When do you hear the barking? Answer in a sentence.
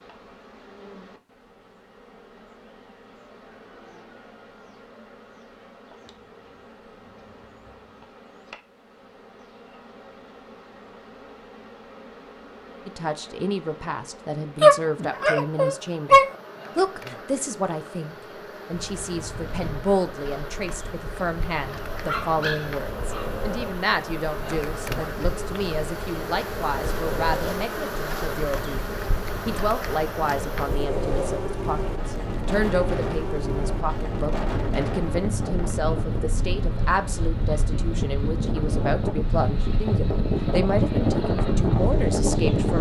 You can hear the barking from 14.6 to 16.2 s and from 22.0 to 23.4 s.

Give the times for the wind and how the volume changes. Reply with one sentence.
You can hear the wind from 18.7 to 42.7 s, getting louder.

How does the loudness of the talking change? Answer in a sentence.
The loudness of the talking stays about the same.